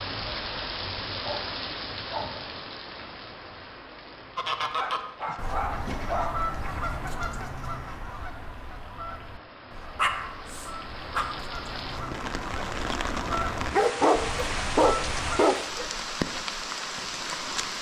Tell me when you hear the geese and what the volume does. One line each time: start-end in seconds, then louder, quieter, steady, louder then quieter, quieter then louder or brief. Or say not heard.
4.3-15.4 quieter then louder.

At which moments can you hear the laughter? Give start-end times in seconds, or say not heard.
not heard.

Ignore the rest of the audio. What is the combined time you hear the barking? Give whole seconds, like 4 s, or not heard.
7 s.